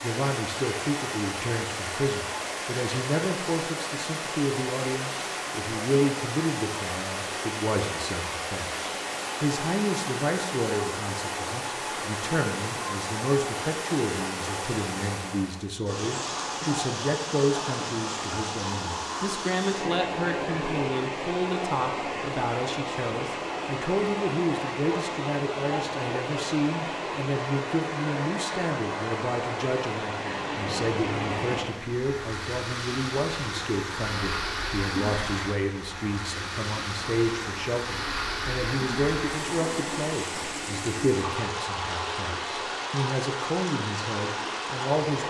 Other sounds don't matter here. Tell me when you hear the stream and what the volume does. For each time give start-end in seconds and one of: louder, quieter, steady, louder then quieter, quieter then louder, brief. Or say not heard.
0.0-45.2 steady.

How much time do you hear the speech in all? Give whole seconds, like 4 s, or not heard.
45 s.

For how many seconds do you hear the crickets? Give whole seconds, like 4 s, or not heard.
not heard.